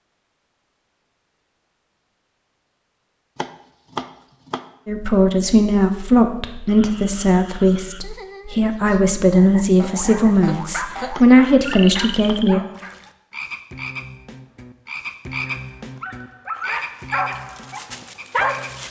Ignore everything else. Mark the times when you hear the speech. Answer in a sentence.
You can hear the speech from 4.8 to 12.6 s.